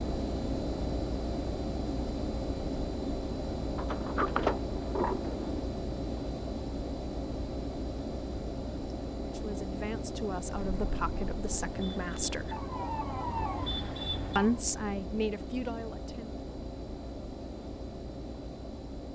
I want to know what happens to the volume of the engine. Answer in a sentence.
The loudness of the engine goes down.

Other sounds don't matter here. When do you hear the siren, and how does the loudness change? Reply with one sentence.
You can hear the siren from 10.6 to 14.6 s, getting louder.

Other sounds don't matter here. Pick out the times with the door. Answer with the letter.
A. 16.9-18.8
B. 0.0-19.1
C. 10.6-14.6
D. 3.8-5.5
D.